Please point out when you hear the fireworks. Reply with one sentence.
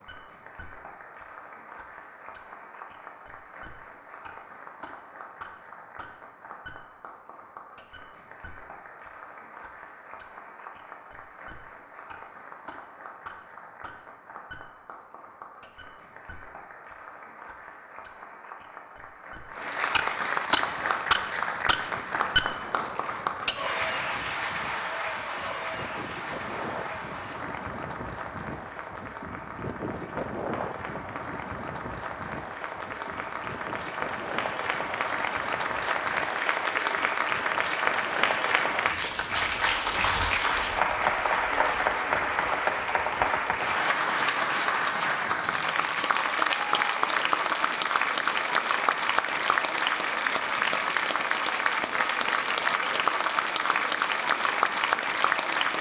You can't hear the fireworks here.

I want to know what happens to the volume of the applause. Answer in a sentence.
The volume of the applause goes up.